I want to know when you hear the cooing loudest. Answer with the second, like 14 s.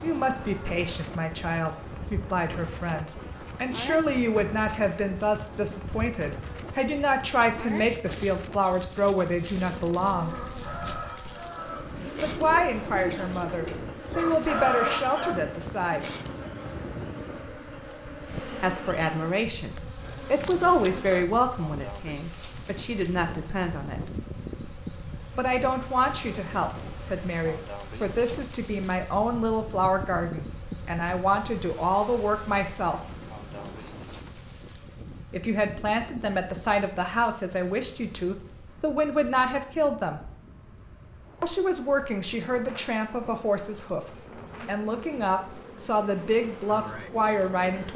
15 s.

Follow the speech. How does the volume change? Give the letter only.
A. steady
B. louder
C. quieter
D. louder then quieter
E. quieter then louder
A.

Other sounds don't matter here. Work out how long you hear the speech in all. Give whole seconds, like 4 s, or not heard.
39 s.